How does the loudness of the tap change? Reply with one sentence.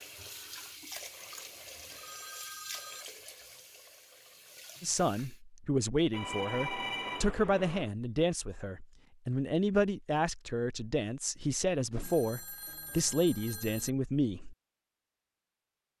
The volume of the tap goes down.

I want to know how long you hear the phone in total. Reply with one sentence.
You can hear the phone for 5 seconds altogether.